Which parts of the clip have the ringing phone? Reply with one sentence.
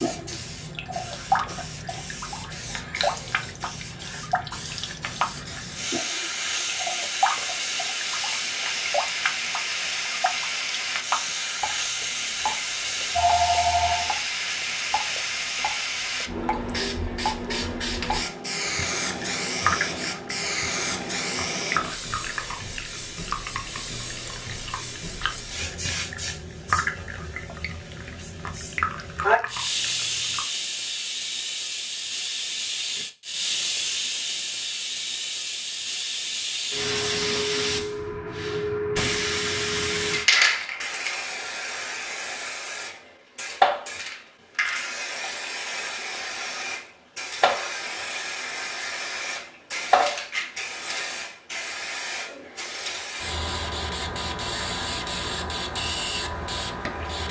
The ringing phone can be heard from 13.2 to 14.1 s.